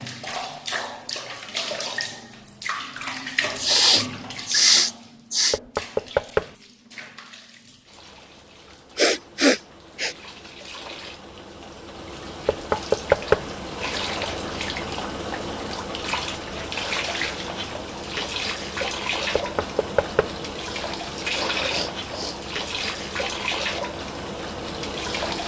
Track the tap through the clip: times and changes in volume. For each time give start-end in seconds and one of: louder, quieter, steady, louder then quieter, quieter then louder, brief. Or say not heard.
0.0-25.4 quieter then louder.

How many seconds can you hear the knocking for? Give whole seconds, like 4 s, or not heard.
3 s.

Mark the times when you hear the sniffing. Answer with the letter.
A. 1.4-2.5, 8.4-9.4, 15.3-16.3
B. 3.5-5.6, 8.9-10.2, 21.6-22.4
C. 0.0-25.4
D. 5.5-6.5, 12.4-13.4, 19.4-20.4
B.